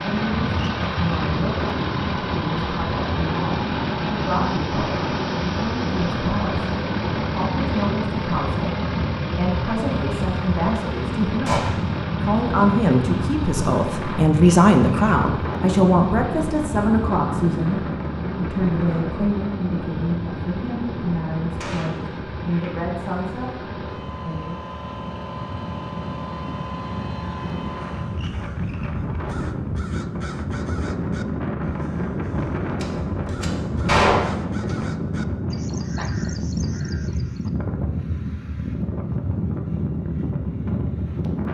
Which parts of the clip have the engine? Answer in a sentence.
The engine can be heard from 0.0 to 28.3 s.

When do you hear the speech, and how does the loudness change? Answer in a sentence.
The speech can be heard from 0.0 to 24.6 s, getting louder then quieter.